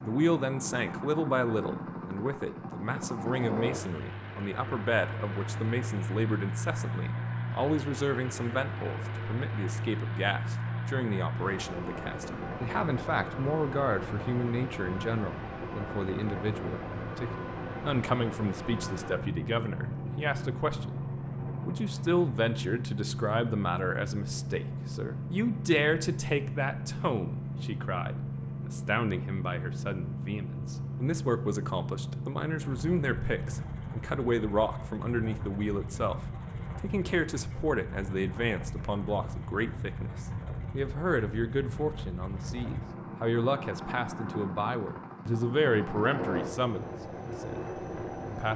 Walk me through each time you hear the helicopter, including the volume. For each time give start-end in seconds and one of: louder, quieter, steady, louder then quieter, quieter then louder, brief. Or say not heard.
0.0-48.5 steady.